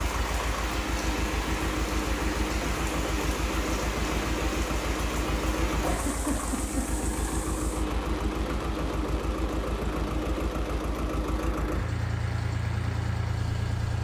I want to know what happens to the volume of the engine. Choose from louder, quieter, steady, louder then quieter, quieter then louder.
steady.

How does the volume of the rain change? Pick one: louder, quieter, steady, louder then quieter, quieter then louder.
quieter.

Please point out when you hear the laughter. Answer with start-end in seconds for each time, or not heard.
5.8-6.9.